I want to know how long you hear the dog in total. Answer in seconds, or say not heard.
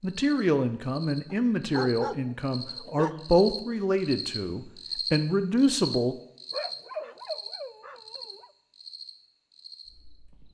4 s.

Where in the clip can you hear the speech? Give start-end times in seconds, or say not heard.
0.0-6.2.